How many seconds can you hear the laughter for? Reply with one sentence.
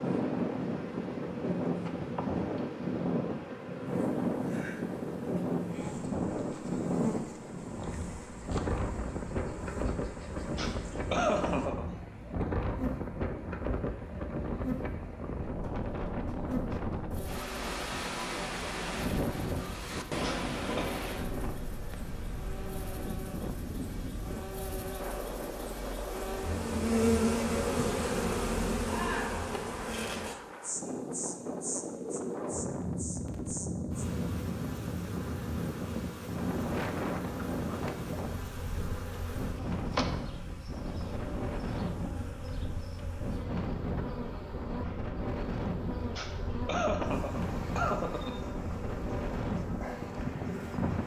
You can hear the laughter for 4 seconds altogether.